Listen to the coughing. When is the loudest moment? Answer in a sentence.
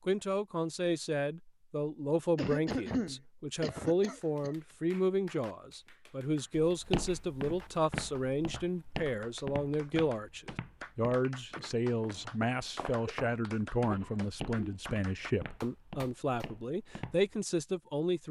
The volume of the coughing peaks at 3 seconds.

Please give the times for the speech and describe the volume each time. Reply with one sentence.
You can hear the speech from 0.1 to 18.2 s, at a steady volume.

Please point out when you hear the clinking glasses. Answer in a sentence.
The clinking glasses can't be heard in this clip.